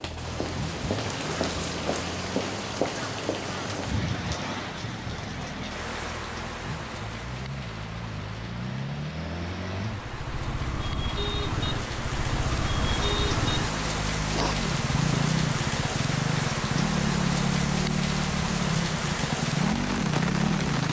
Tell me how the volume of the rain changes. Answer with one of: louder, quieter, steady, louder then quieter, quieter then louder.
quieter then louder.